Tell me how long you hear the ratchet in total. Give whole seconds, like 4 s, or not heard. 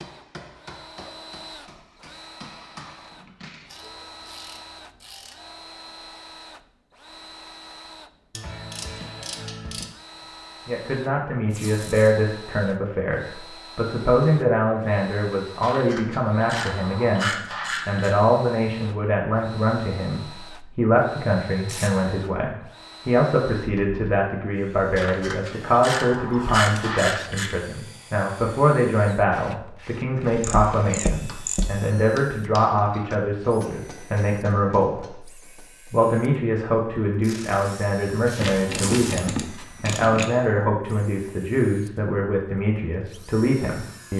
12 s.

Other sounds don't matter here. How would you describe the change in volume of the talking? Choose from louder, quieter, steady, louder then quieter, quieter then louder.
steady.